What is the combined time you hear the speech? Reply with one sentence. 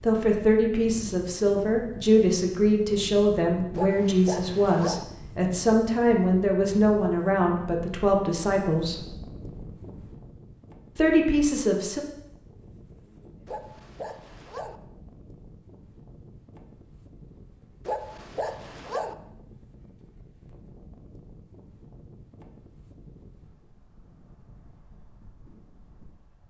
You can hear the speech for 10 seconds altogether.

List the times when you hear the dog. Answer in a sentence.
The dog can be heard from 3.8 to 5.0 s, from 13.4 to 14.8 s and from 17.9 to 19.1 s.